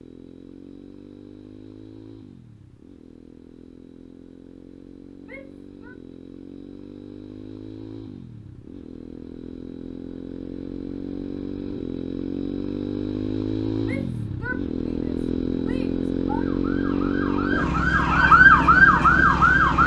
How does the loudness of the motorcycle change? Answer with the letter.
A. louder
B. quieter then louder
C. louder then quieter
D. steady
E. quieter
A.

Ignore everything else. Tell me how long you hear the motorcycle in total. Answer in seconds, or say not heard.
20 s.